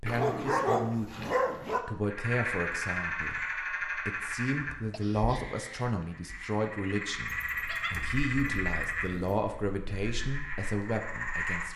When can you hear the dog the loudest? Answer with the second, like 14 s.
1 s.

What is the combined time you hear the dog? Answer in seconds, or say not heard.
4 s.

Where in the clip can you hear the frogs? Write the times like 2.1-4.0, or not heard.
2.0-11.7.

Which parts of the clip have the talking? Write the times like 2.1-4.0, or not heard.
0.0-11.7.